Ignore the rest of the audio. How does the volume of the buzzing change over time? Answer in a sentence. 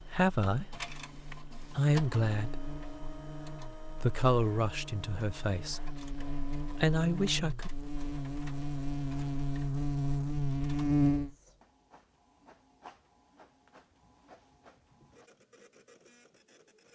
The loudness of the buzzing goes up.